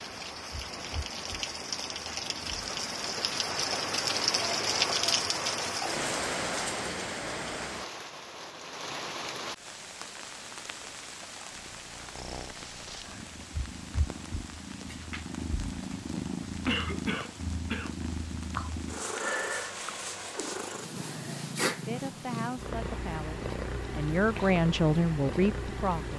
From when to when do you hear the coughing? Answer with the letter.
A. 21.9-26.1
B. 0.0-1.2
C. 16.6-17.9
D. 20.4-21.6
C.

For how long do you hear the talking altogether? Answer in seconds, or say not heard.
4 s.